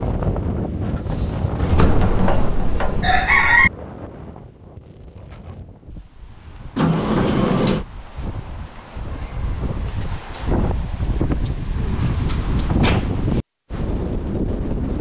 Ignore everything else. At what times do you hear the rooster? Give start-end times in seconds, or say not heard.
1.6-3.7.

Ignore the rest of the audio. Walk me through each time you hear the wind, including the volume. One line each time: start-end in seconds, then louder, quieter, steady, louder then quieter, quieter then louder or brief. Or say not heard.
0.0-14.9 quieter then louder.